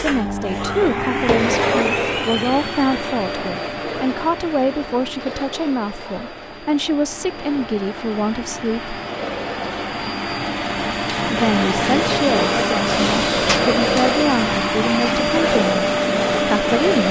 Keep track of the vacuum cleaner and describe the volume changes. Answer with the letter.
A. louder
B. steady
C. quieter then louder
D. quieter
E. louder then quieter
C.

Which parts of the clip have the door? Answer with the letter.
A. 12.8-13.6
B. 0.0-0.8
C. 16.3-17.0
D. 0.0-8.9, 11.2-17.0
A.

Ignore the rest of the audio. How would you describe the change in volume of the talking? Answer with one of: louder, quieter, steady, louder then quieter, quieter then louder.
steady.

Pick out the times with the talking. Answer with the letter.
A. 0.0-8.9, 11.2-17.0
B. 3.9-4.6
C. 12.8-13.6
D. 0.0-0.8
A.